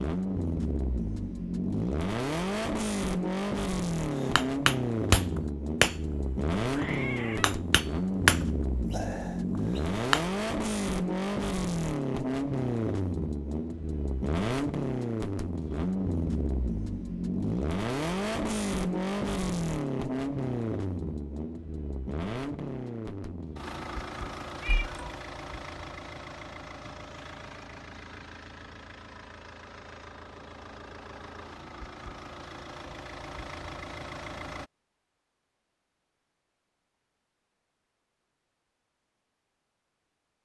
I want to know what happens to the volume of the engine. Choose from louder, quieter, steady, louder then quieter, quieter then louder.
quieter.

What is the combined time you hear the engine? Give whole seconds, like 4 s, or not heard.
35 s.